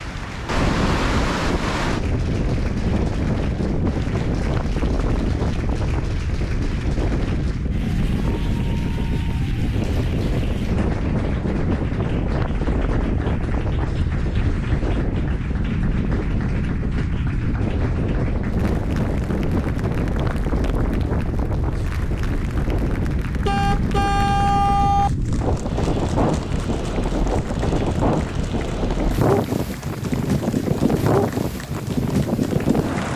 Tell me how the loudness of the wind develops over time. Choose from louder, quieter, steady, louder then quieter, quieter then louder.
steady.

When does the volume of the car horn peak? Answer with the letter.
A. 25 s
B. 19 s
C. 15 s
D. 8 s
A.